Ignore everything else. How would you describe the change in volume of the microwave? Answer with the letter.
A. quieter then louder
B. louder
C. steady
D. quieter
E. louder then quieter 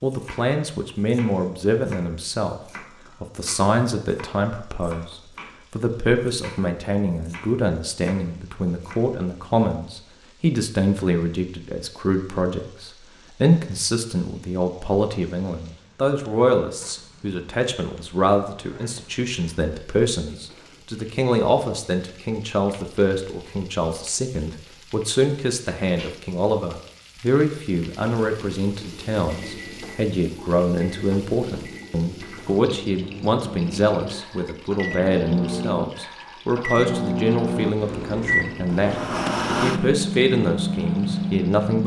B.